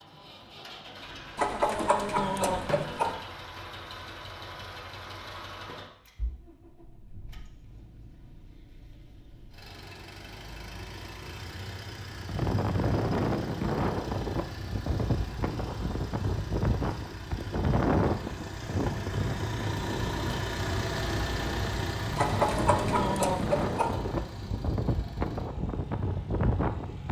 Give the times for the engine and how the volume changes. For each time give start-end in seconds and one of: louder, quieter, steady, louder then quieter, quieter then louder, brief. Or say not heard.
0.0-27.0 quieter then louder.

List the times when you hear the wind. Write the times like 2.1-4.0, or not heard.
12.2-27.0.